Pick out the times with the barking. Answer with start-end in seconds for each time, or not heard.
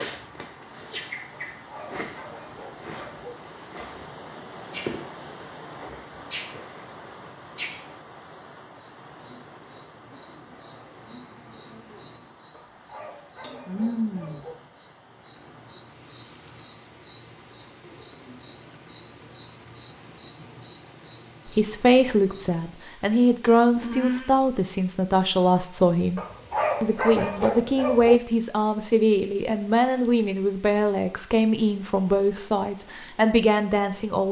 1.6-3.4, 12.5-14.6, 26.1-28.2.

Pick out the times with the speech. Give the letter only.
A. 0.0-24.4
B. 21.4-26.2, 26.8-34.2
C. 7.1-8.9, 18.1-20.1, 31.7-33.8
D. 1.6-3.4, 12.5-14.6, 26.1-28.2
B.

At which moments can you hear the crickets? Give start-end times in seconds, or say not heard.
0.0-24.4.